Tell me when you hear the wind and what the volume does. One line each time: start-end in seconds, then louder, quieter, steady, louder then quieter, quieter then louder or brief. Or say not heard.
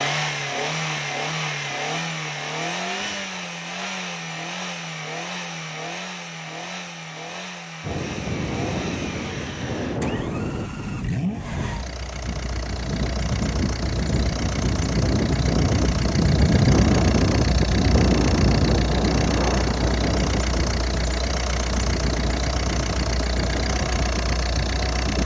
7.8-25.2 louder then quieter.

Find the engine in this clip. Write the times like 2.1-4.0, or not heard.
0.0-25.2.